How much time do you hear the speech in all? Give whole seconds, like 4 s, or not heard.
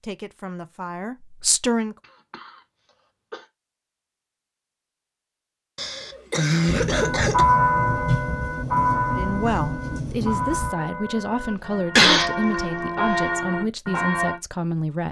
8 s.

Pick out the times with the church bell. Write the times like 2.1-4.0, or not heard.
7.0-14.4.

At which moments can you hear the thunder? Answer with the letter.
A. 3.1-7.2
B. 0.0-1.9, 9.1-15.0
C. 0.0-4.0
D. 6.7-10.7
D.